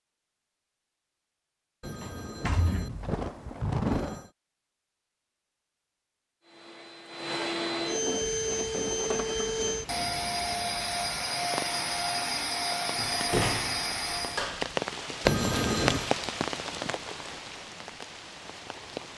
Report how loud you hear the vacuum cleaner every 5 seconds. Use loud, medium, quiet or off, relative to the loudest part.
off, loud, loud, off.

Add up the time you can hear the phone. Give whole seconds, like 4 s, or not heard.
3 s.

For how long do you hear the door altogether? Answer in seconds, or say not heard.
3 s.